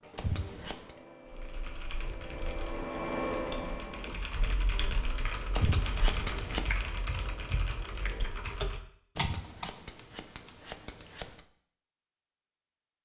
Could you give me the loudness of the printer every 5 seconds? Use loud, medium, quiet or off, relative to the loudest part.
loud, medium, off.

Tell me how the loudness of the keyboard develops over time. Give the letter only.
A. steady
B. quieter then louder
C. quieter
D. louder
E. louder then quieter
D.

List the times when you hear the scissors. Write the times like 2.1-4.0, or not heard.
0.1-0.9, 5.5-6.7, 9.2-11.4.